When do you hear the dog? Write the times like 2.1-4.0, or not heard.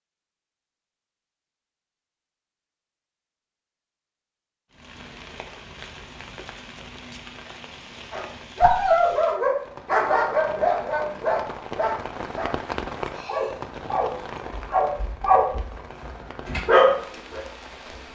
8.1-17.4.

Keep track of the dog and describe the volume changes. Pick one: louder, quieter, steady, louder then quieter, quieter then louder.
quieter then louder.